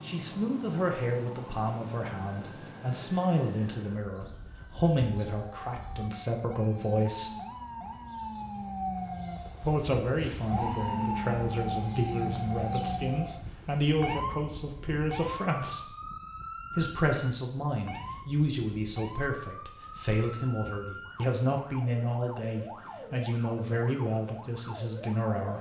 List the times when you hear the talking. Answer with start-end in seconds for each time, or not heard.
0.0-7.3, 9.6-15.9, 16.8-25.5.